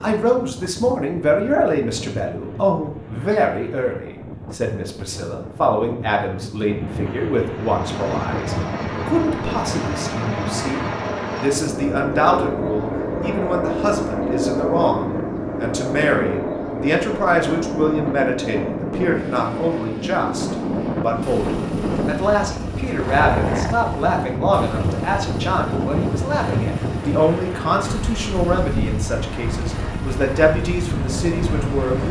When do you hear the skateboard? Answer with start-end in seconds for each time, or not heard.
not heard.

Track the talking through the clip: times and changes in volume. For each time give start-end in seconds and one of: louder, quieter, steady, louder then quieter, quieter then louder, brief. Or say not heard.
0.0-32.0 steady.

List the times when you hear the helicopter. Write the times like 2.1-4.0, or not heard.
7.5-32.0.